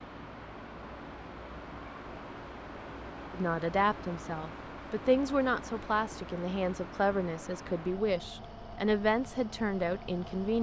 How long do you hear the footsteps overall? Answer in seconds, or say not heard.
not heard.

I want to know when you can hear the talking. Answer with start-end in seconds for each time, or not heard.
3.3-10.5.